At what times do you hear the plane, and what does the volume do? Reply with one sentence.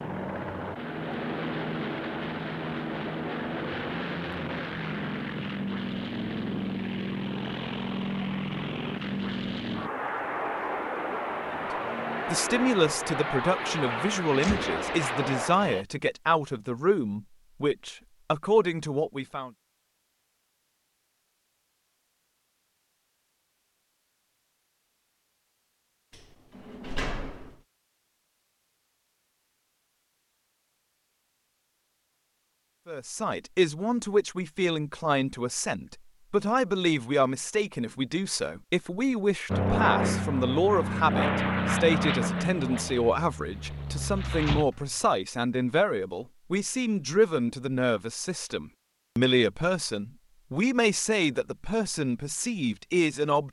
You can hear the plane from 0.0 to 15.8 s, at a steady volume; and from 39.5 to 44.6 s, getting quieter.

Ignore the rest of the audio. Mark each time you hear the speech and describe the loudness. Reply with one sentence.
You can hear the speech from 11.5 to 19.5 s, at a steady volume; and from 32.9 to 53.4 s, at a steady volume.